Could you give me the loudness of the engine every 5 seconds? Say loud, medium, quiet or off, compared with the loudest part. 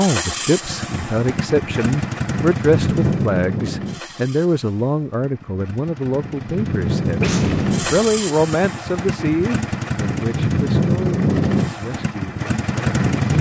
medium, medium, loud.